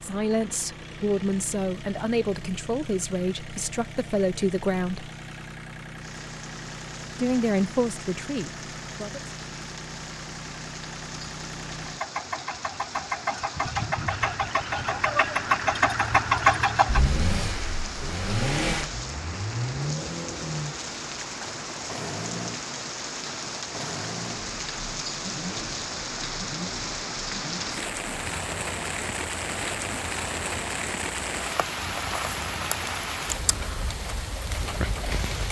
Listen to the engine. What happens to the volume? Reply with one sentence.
The volume of the engine goes up, then down.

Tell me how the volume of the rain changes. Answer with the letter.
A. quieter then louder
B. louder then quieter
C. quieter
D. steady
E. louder
E.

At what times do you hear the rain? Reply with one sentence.
You can hear the rain from 5.9 to 35.4 s.